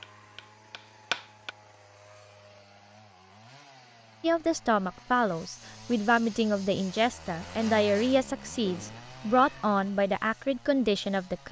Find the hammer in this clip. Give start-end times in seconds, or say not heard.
0.0-1.6.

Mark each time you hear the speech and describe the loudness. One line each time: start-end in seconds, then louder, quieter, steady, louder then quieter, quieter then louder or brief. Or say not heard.
4.2-11.4 steady.